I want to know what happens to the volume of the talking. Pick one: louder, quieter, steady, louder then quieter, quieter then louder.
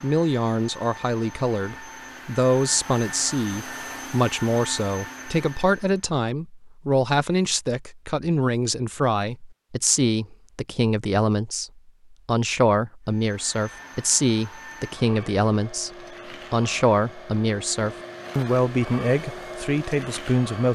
steady.